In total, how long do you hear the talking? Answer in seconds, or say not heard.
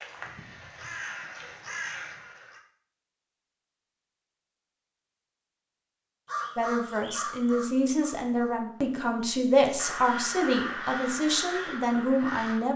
6 s.